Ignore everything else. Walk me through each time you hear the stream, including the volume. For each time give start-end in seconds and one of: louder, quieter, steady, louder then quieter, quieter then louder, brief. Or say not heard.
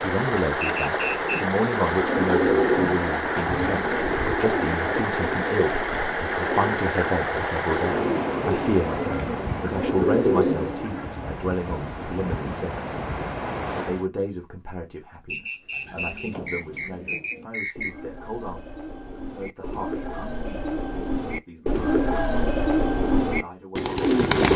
0.0-14.1 quieter.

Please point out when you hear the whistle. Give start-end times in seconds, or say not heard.
0.6-1.4, 15.2-18.0.